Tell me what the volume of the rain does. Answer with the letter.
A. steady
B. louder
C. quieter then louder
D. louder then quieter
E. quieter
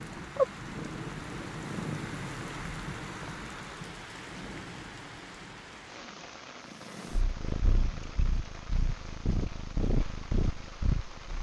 E.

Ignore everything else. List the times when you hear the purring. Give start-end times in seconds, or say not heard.
0.0-2.1, 6.7-11.3.